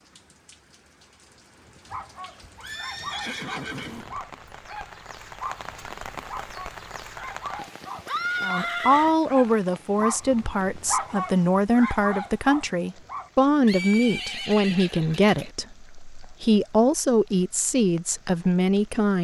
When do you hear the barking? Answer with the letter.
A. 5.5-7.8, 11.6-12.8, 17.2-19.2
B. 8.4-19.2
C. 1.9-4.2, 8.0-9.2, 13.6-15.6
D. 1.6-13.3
D.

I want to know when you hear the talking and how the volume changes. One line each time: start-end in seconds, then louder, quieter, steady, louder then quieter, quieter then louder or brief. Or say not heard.
8.4-19.2 steady.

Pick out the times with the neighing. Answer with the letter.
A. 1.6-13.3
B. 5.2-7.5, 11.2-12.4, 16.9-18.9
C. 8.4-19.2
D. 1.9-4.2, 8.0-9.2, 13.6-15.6
D.